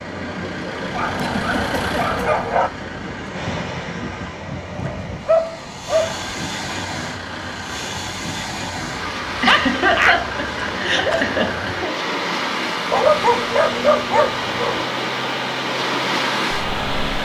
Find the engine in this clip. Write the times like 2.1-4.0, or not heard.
0.0-4.3, 5.9-17.2.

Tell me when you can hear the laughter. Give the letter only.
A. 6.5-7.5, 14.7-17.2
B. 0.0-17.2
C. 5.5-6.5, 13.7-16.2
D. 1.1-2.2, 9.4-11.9
D.